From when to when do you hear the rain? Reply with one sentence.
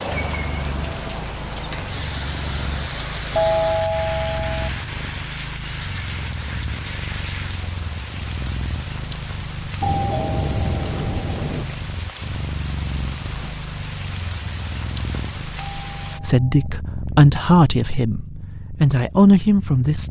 You can hear the rain from 0.0 to 16.2 s.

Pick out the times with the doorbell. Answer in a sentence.
You can hear the doorbell from 3.4 to 4.7 s, from 9.8 to 11.8 s and from 15.6 to 16.7 s.